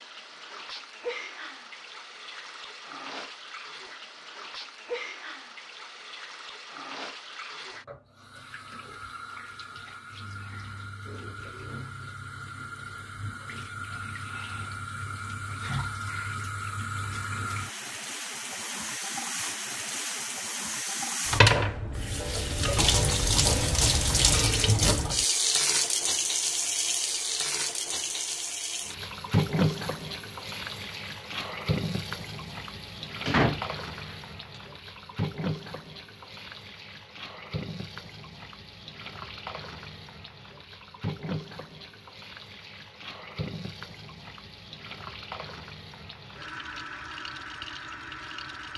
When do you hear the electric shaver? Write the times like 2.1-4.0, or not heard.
not heard.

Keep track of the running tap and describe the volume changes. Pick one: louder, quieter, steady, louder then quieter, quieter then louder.
louder then quieter.